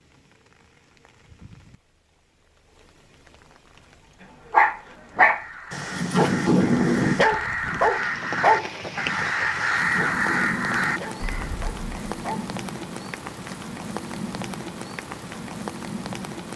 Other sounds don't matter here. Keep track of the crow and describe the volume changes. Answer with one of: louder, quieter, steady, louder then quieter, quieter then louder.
louder.